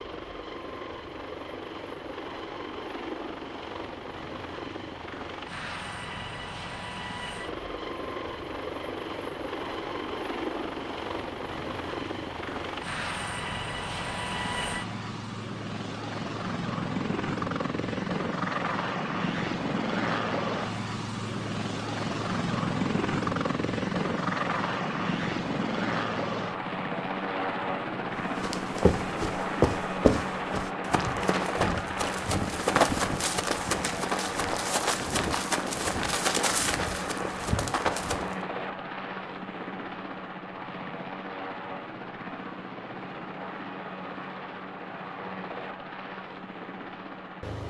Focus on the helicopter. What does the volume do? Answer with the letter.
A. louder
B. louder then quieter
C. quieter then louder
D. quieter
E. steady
B.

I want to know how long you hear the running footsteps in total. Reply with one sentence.
The running footsteps can be heard for 10 seconds in total.